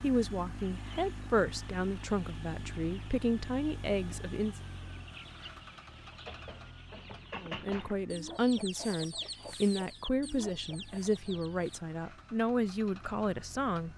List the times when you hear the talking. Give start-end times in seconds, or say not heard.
0.0-4.5, 7.4-13.9.